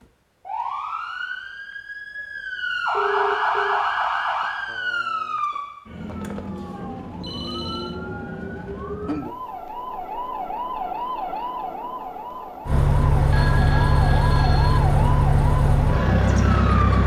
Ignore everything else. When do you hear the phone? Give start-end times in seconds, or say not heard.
2.9-3.8, 6.0-8.0, 13.3-14.8.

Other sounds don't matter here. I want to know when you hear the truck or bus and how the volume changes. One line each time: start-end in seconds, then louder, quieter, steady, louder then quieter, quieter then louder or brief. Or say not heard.
12.7-17.0 steady.